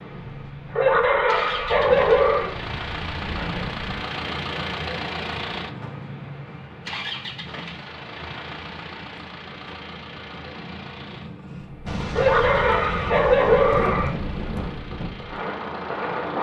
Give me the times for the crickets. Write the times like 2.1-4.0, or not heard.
not heard.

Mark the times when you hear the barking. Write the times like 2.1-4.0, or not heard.
0.8-2.5, 12.2-14.1.